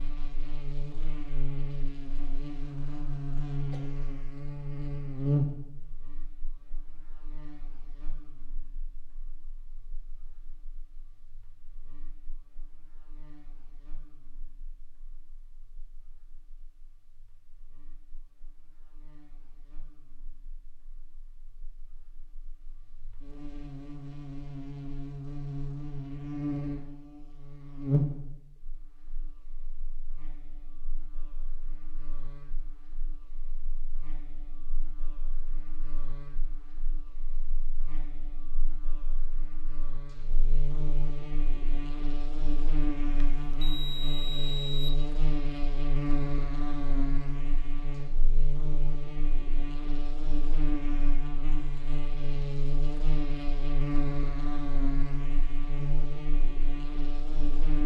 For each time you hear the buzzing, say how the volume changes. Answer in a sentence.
The buzzing can be heard from 0.0 to 57.8 s, getting quieter then louder.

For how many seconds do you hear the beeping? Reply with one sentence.
The beeping can be heard for 2 seconds in total.